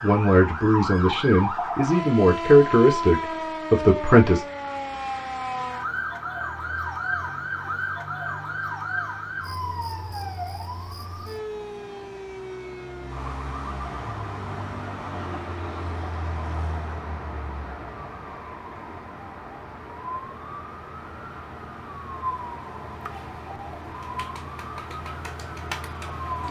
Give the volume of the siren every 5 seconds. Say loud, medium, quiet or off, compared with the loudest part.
loud, loud, medium, quiet, medium, medium.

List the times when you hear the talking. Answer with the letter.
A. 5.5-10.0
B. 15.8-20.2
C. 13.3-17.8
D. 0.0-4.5
D.